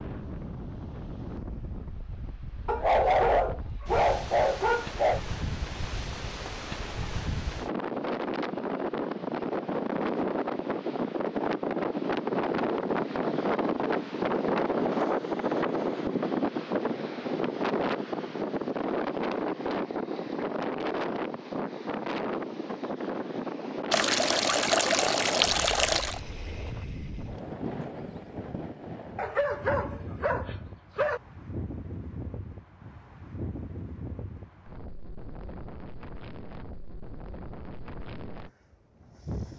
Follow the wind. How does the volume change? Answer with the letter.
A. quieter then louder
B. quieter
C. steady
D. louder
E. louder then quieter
E.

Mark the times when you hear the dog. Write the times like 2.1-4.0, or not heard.
2.6-5.2, 29.1-31.2.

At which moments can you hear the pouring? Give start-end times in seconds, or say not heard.
23.9-26.2.